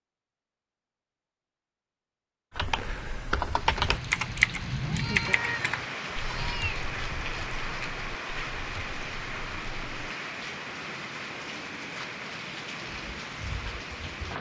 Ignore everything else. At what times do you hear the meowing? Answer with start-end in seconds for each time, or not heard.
4.8-6.8.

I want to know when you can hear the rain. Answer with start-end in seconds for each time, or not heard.
3.6-14.3.